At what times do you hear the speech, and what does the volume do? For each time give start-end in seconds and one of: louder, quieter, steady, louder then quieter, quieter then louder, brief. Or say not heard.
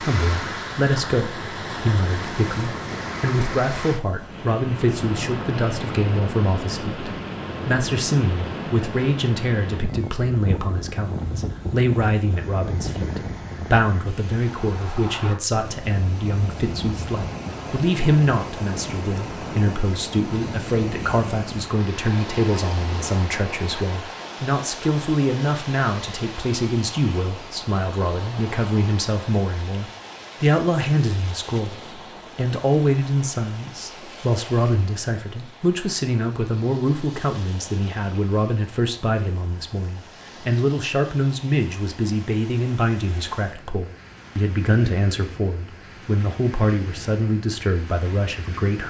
0.0-48.8 steady.